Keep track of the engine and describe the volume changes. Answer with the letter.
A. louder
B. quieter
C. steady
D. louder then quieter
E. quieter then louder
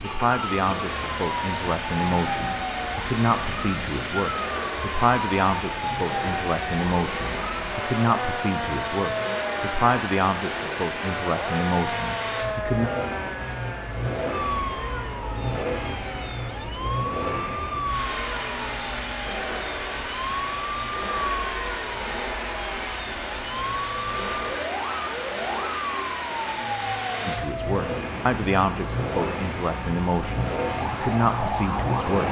C.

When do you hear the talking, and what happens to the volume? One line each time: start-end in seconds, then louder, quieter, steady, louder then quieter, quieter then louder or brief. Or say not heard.
0.0-12.9 steady
27.2-32.2 quieter then louder.